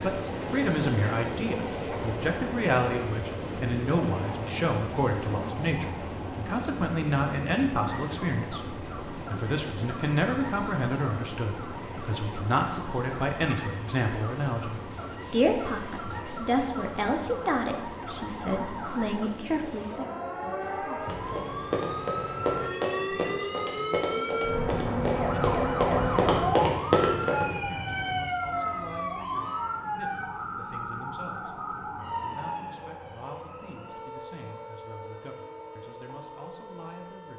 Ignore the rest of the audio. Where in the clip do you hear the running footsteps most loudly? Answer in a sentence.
The volume of the running footsteps peaks at 27 seconds.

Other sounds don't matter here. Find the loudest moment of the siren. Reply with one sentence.
The volume of the siren peaks at 26 seconds.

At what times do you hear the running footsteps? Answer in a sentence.
You can hear the running footsteps from 21.0 to 27.4 s.